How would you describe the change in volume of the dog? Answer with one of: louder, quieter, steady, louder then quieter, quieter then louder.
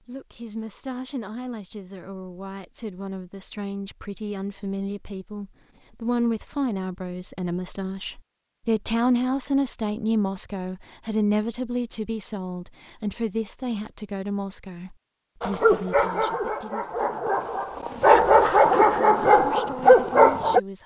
louder.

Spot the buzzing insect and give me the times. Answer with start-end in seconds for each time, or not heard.
not heard.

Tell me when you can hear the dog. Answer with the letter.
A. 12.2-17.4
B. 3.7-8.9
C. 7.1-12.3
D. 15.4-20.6
D.